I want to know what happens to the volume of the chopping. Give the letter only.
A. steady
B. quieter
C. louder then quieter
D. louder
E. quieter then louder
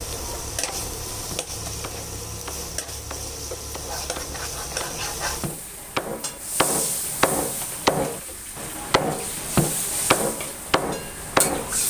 D.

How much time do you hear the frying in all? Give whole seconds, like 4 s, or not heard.
12 s.